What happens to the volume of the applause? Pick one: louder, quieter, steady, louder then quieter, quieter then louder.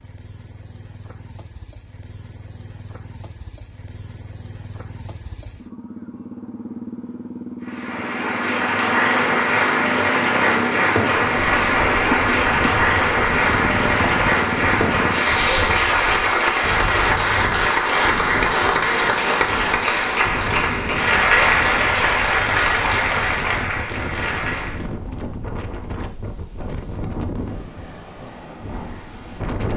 steady.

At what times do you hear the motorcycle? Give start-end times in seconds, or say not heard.
0.0-15.2.